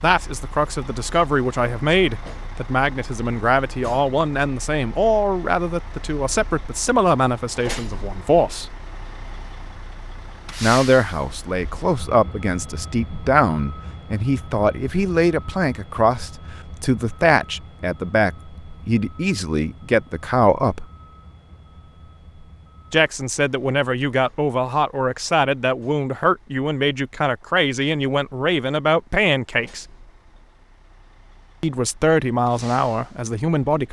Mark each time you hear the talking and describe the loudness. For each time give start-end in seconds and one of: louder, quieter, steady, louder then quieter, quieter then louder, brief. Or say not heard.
0.0-8.7 steady
10.6-20.9 steady
22.9-29.9 steady
31.6-33.8 brief.